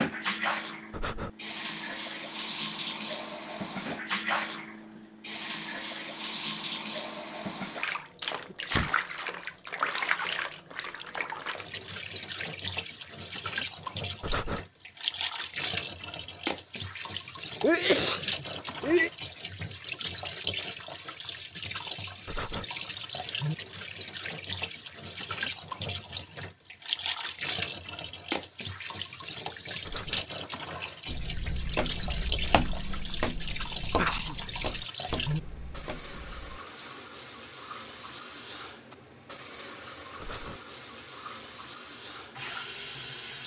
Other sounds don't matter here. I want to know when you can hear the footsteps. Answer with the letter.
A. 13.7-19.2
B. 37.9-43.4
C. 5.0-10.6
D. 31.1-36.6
D.